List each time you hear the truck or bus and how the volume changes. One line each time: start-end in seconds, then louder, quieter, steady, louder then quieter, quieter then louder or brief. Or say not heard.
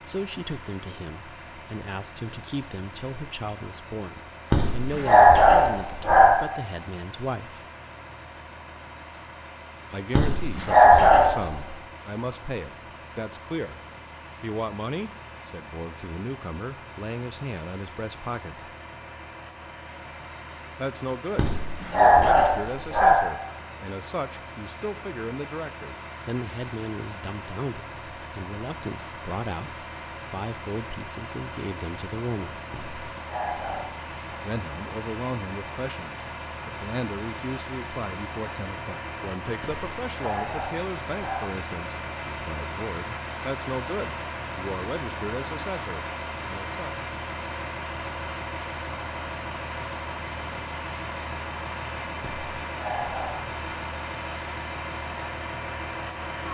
0.0-56.4 louder.